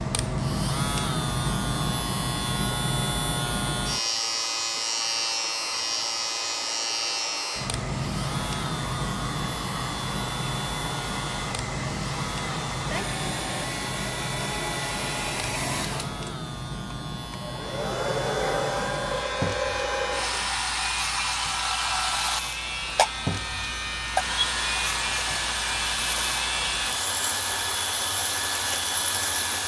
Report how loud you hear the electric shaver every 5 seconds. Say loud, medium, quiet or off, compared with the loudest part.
loud, loud, medium, medium, medium, medium.